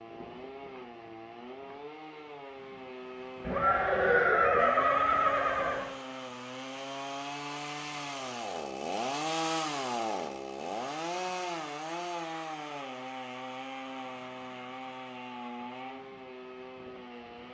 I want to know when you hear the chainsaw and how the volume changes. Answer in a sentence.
The chainsaw can be heard from 0.0 to 17.5 s, getting louder then quieter.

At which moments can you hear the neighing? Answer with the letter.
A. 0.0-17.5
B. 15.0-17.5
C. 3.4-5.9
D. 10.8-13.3
C.